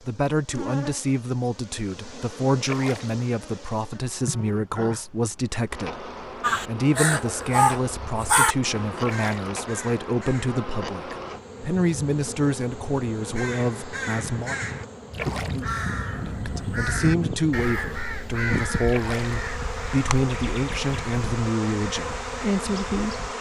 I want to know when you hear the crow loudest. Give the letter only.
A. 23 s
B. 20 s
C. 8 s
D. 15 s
C.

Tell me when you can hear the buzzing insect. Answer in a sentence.
You can hear the buzzing insect from 0.0 to 23.3 s.